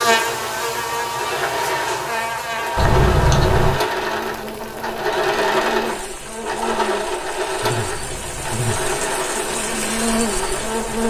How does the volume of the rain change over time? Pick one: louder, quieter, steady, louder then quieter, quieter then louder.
louder.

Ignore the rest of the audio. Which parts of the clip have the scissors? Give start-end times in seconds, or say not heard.
2.8-3.8, 7.8-9.2.